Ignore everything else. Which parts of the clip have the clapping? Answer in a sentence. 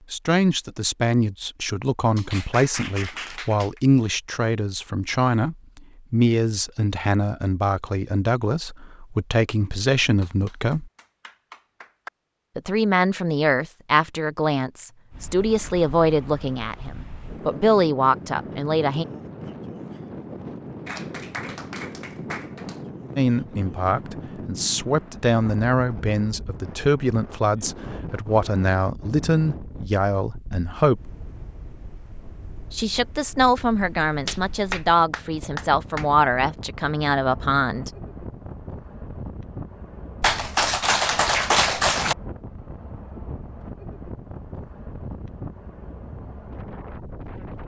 You can hear the clapping from 2.1 to 3.8 s, from 10.2 to 12.1 s, from 20.9 to 22.8 s, from 34.2 to 36.0 s and from 40.2 to 42.1 s.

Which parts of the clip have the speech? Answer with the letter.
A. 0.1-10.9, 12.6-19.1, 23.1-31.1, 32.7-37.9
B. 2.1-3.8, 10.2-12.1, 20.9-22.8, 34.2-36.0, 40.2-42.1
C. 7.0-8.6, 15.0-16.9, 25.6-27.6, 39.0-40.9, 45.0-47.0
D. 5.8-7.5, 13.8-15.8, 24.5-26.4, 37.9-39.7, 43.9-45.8
A.